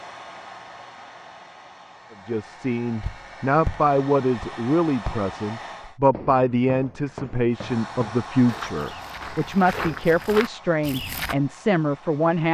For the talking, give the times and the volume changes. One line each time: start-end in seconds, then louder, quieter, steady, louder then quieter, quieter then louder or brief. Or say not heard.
2.2-12.4 steady.